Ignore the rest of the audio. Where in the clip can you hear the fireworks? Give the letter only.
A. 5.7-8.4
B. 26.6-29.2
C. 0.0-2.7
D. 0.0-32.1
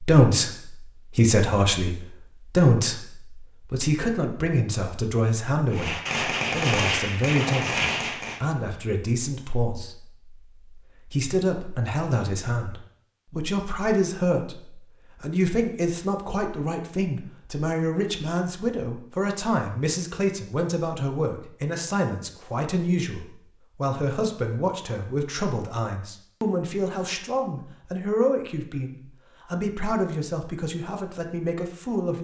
A.